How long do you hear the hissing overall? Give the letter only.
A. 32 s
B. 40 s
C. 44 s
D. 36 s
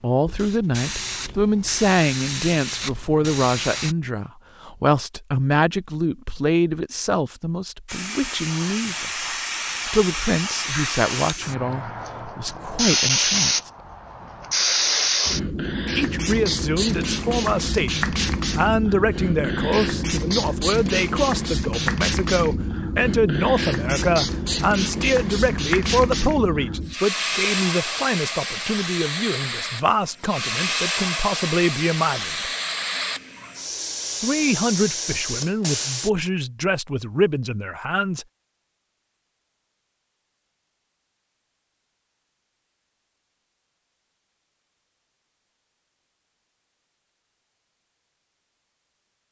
A.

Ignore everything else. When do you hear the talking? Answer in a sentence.
The talking can be heard from 0.0 to 9.1 s, from 9.7 to 13.7 s, from 15.9 to 32.5 s and from 34.2 to 38.2 s.